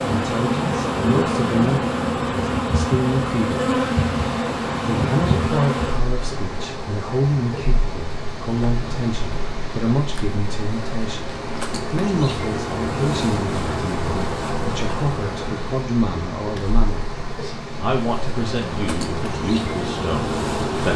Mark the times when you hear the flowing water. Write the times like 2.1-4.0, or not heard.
4.0-20.9.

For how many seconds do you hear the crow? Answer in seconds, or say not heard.
not heard.